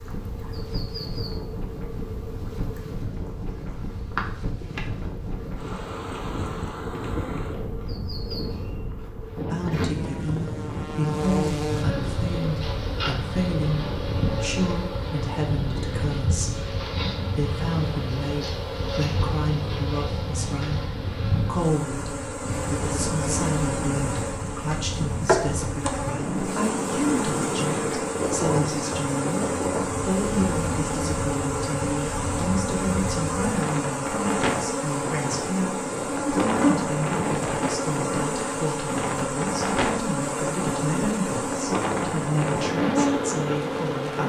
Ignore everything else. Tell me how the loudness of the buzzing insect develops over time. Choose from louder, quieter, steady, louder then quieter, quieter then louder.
louder.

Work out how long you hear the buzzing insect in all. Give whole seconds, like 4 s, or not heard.
44 s.